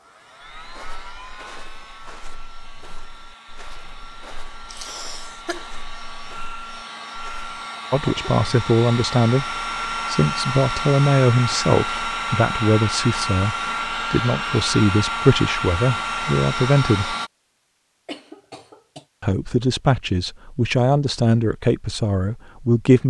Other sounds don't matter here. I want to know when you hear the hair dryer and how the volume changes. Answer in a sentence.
You can hear the hair dryer from 0.0 to 17.3 s, getting louder.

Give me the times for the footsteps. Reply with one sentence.
The footsteps can be heard from 0.4 to 7.7 s.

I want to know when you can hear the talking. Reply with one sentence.
You can hear the talking from 7.9 to 17.1 s and from 19.2 to 23.0 s.